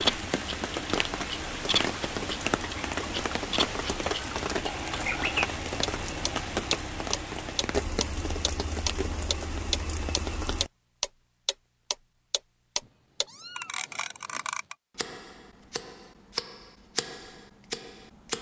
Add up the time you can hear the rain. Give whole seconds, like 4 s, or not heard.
11 s.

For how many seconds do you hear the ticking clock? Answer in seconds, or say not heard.
18 s.